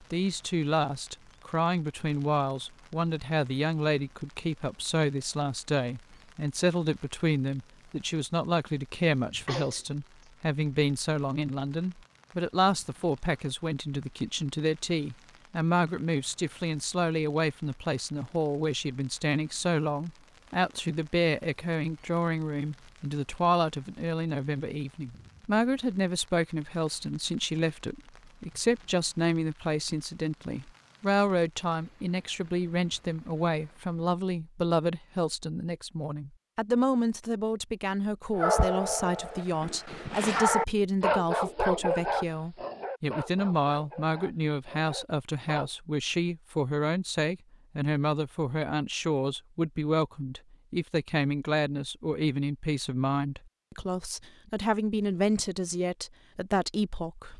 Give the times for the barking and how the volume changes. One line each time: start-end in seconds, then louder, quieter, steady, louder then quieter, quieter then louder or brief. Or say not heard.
38.4-45.7 louder then quieter.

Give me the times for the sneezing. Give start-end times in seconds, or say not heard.
9.4-9.8.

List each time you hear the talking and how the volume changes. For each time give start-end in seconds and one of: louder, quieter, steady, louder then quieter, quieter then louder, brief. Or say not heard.
0.1-57.3 steady.